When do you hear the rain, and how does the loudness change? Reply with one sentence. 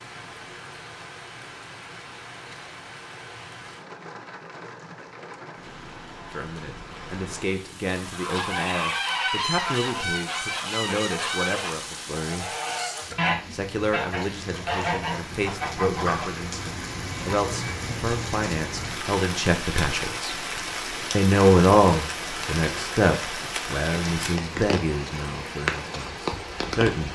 You can hear the rain from 0.0 to 27.0 s, getting louder.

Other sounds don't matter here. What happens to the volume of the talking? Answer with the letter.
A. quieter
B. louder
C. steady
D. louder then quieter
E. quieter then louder
D.